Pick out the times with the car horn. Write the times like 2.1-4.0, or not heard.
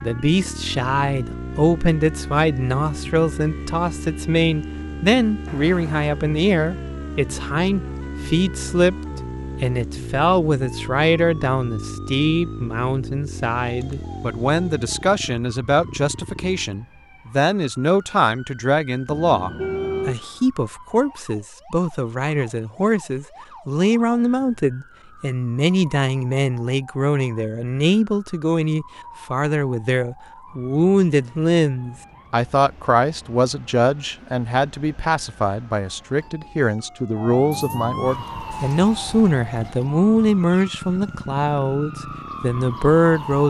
5.5-6.0, 19.1-20.1, 40.5-41.4.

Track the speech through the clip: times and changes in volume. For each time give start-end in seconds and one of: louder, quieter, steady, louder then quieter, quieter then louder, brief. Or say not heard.
0.0-8.9 steady
9.6-43.4 steady.